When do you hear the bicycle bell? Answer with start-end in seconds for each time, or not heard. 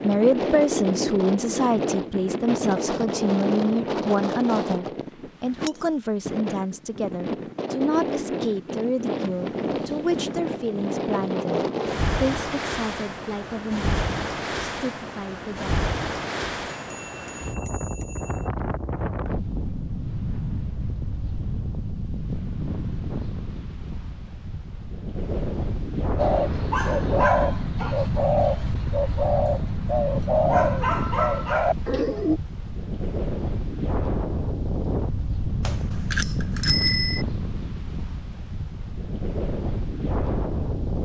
16.9-18.5, 35.6-37.2.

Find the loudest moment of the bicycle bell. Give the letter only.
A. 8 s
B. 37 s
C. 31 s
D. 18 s
B.